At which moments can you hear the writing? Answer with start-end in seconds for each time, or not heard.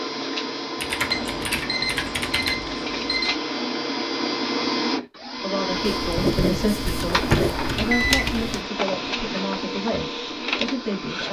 5.8-7.8.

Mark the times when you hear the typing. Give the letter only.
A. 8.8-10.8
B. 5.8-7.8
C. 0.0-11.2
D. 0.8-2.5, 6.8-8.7
D.